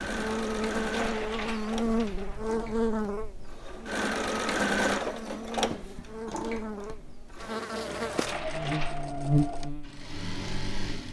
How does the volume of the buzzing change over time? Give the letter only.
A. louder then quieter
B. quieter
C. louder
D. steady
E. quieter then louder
E.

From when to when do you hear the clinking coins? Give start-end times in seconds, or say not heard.
0.8-2.4, 8.1-9.1.